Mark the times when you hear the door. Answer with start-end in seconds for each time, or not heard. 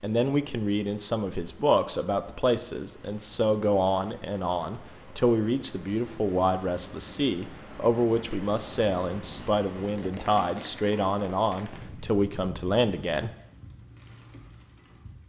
not heard.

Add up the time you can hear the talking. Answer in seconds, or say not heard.
13 s.